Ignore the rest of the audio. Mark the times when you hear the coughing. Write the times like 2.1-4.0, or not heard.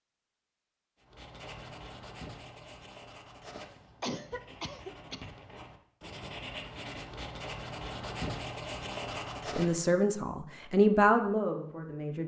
4.0-5.2.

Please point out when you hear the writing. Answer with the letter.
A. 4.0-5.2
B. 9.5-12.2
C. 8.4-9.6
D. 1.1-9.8
D.